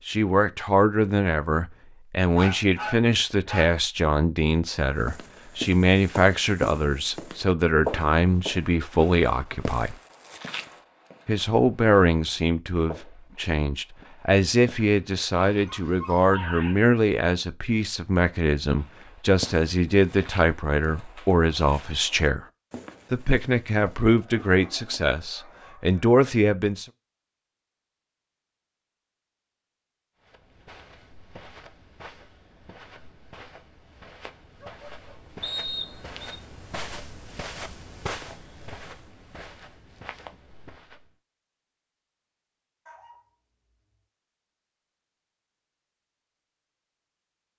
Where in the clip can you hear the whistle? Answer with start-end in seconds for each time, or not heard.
35.4-36.4.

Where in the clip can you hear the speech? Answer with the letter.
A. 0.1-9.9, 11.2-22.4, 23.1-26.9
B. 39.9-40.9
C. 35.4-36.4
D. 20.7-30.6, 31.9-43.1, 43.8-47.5
A.